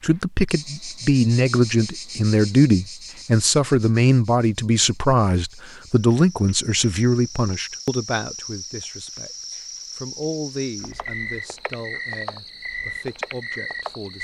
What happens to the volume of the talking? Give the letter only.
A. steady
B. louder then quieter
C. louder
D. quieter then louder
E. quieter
E.